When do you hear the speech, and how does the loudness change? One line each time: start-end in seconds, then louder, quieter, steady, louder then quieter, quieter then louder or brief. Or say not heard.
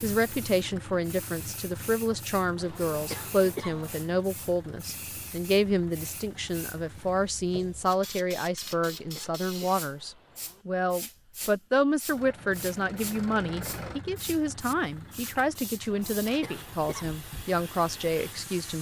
0.0-18.7 steady.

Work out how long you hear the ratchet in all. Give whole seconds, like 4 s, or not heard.
not heard.